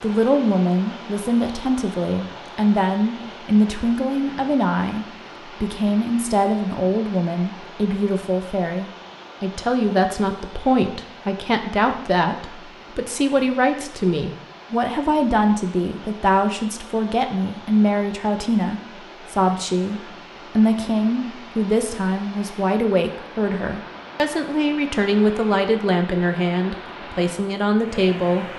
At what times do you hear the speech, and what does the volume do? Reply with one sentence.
The speech can be heard from 0.0 to 28.5 s, at a steady volume.